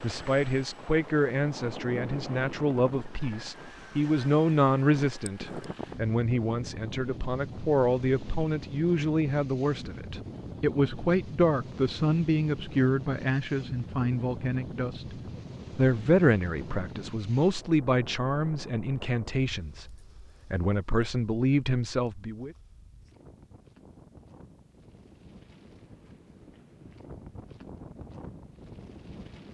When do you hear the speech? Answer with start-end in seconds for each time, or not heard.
0.0-15.2, 15.8-22.6.